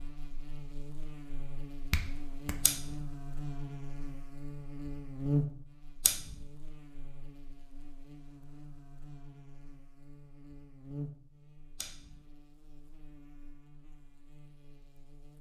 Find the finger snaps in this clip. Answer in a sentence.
The finger snaps can be heard from 1.9 to 2.6 s.